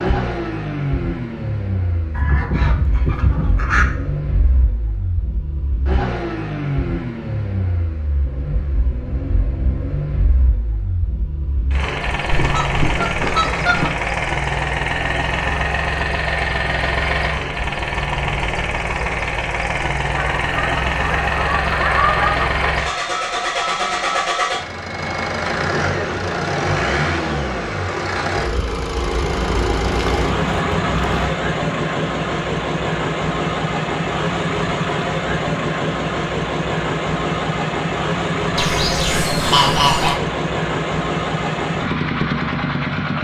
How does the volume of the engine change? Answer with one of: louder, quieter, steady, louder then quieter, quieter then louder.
louder.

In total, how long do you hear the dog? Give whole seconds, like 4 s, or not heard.
not heard.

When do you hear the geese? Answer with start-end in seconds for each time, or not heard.
2.1-3.9, 12.3-13.9, 20.1-22.8, 29.2-31.3, 38.5-40.2.